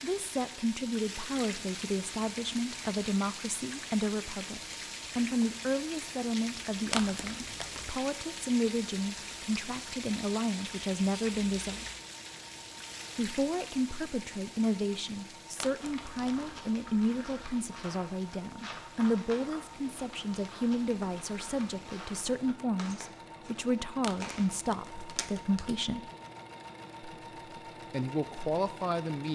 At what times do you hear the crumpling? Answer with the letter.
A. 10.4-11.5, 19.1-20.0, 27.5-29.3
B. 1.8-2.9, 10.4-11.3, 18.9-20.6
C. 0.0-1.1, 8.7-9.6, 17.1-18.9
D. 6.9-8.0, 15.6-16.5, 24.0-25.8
D.